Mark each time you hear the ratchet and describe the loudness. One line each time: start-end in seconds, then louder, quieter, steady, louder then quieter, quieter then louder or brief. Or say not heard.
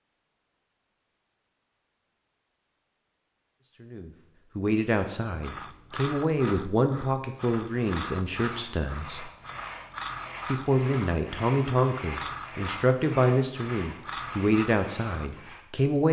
5.4-15.3 steady.